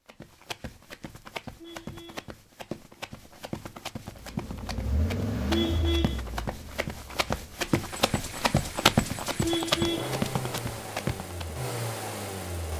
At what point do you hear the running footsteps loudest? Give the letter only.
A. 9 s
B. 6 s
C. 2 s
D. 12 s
A.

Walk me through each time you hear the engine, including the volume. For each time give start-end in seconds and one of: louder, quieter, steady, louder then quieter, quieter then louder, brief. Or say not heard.
4.1-12.7 quieter then louder.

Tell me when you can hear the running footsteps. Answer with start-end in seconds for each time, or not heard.
0.1-11.6.